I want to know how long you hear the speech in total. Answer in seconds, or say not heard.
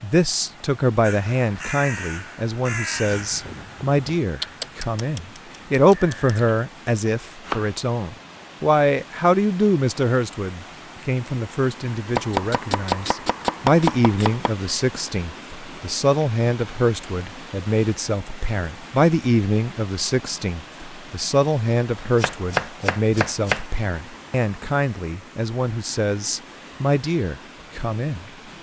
28 s.